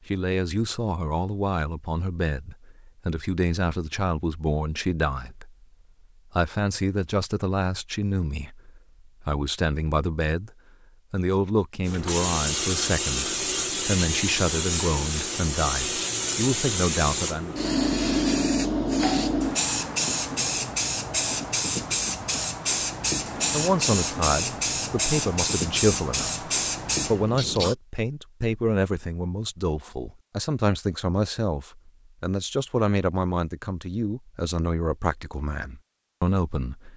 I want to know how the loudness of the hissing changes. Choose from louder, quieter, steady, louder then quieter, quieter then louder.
steady.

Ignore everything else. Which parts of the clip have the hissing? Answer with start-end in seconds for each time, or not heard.
11.8-27.8.